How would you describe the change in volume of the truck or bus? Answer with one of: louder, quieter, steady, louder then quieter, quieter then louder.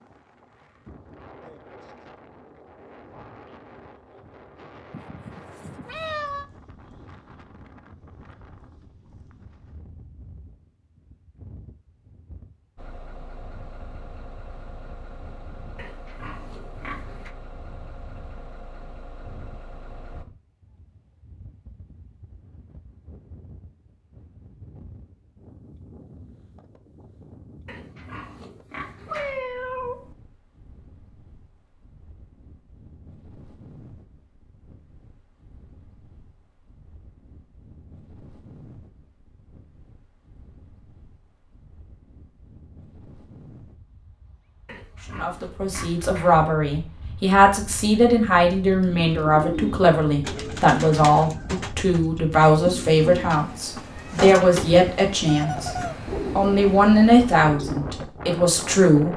steady.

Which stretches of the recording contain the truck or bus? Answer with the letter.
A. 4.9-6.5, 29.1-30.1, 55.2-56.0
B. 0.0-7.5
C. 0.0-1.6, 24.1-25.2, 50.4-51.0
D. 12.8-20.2
D.